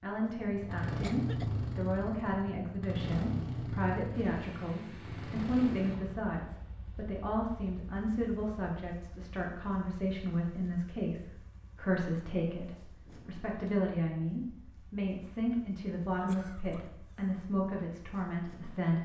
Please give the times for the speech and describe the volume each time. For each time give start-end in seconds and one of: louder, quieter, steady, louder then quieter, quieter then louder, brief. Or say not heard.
0.0-19.0 steady.